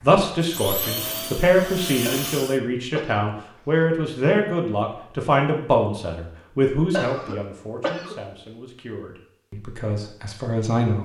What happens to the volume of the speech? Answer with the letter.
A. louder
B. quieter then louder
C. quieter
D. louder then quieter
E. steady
C.